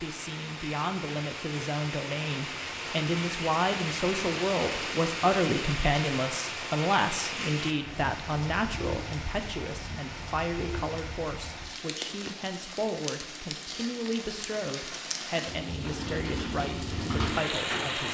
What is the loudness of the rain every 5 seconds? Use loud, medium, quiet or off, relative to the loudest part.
loud, loud, medium, loud.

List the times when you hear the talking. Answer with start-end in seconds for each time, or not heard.
0.0-18.1.